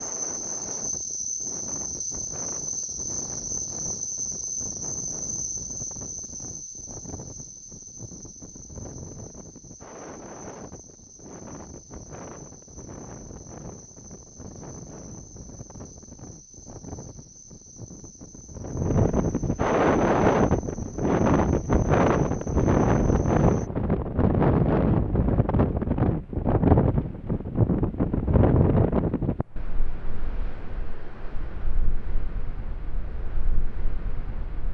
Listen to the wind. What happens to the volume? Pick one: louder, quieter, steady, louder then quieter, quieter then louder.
louder then quieter.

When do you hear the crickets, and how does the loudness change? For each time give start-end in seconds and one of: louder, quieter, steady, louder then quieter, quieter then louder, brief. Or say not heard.
0.0-23.7 quieter.